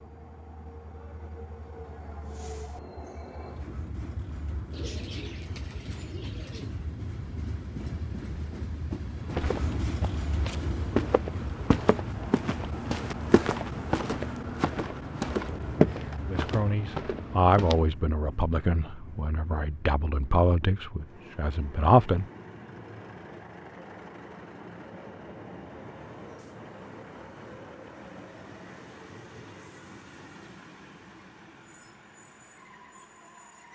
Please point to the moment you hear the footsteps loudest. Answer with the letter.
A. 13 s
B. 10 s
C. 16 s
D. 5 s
C.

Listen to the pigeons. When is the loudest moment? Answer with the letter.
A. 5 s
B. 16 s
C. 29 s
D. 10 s
A.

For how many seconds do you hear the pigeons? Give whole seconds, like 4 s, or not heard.
2 s.